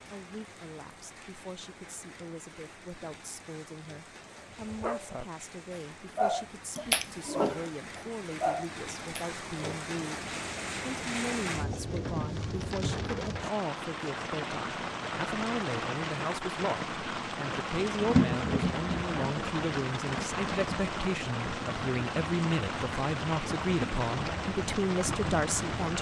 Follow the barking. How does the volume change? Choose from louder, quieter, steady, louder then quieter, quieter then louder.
louder then quieter.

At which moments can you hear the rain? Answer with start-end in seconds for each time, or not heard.
0.0-25.9.